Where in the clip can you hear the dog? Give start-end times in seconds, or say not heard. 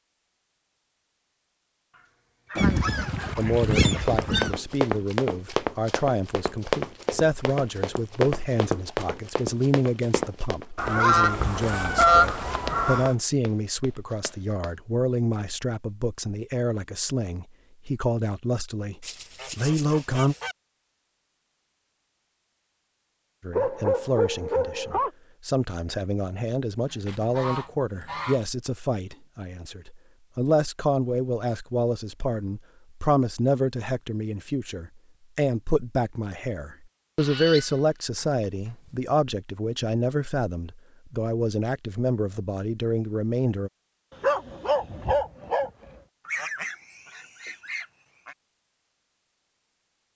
1.9-3.5, 23.5-25.1, 44.2-45.7.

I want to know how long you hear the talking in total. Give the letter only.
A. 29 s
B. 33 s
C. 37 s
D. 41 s
C.